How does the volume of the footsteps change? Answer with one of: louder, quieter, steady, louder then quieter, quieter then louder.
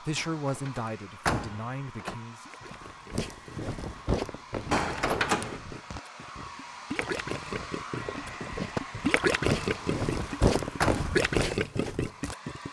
quieter then louder.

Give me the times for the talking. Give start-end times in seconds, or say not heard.
0.0-2.5.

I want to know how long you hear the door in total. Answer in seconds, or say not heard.
4 s.